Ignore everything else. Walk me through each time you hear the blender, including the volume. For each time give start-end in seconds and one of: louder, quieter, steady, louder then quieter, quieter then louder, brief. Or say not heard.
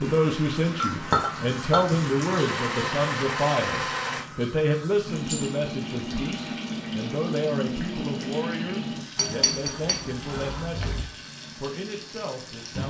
0.0-4.2 louder.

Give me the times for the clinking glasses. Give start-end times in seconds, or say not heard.
0.8-1.8, 5.2-5.7, 9.2-11.1.